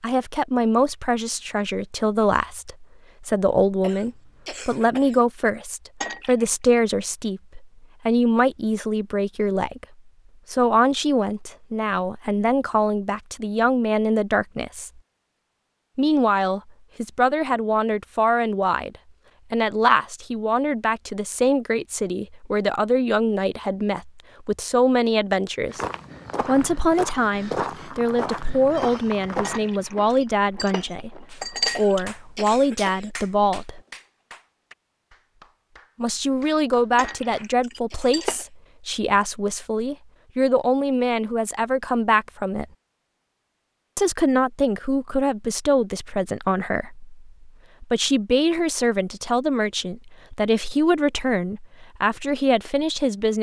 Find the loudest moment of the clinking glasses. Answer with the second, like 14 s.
32 s.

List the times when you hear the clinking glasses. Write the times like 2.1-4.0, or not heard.
6.0-6.7, 29.4-32.0, 37.0-38.4.